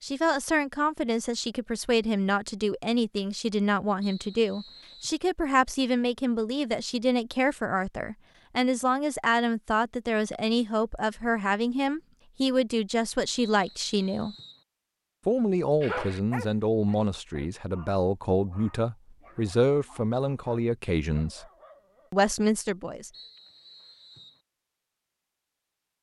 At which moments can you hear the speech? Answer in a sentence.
You can hear the speech from 0.0 to 14.3 s, from 15.2 to 21.4 s and from 22.1 to 23.1 s.